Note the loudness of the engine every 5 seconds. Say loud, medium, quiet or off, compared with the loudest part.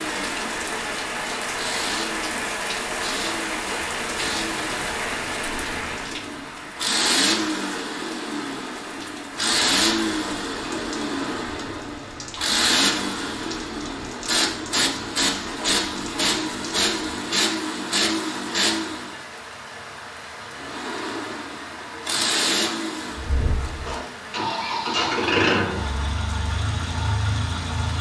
medium, loud, loud, loud, loud, loud.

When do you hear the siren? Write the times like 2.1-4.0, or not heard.
not heard.